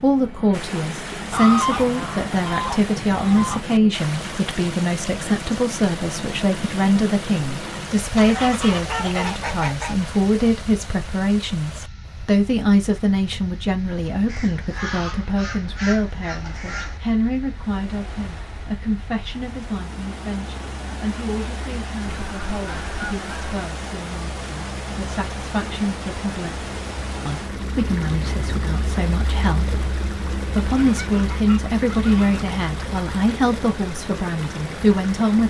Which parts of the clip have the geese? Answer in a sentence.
The geese can be heard from 1.3 to 3.6 s, from 8.2 to 9.9 s, from 14.2 to 17.0 s, from 22.1 to 23.6 s and from 30.8 to 32.5 s.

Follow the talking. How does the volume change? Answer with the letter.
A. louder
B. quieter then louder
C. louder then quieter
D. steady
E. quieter
B.